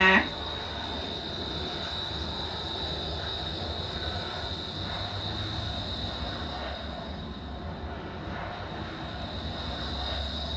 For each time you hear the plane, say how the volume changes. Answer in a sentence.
The plane can be heard from 0.0 to 10.5 s, at a steady volume.